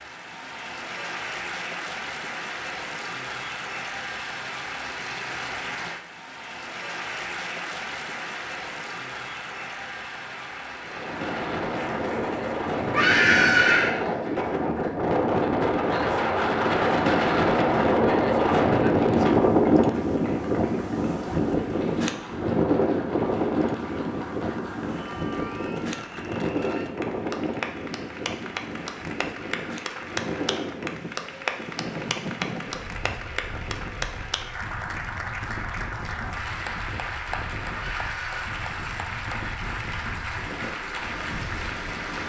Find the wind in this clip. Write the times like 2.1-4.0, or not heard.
10.8-42.2.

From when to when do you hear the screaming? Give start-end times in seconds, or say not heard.
12.9-13.9, 37.7-38.4.